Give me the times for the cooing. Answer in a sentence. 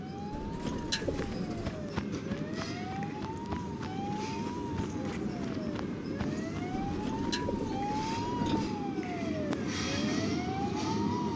The cooing can be heard from 0.3 to 1.9 s and from 6.8 to 8.7 s.